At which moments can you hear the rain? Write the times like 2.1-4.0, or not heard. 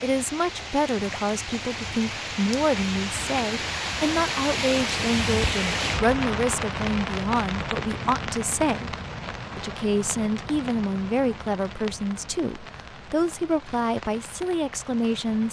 0.0-15.4.